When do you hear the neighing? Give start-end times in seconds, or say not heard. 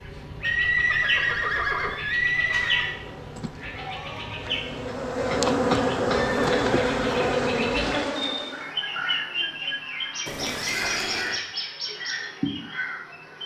0.4-3.0, 6.1-7.3, 10.2-11.4.